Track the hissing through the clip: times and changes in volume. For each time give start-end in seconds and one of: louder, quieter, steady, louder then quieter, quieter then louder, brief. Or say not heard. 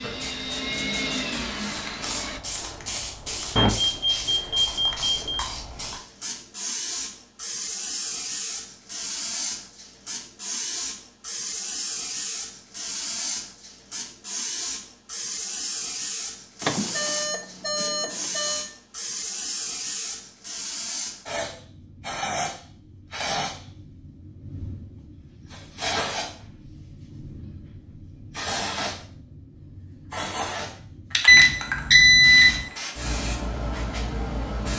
0.0-34.7 steady.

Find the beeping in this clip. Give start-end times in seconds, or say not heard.
3.5-5.4, 16.6-18.7, 31.2-32.7.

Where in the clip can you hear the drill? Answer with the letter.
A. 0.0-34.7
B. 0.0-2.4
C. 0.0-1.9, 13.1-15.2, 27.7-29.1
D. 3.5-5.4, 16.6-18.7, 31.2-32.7
B.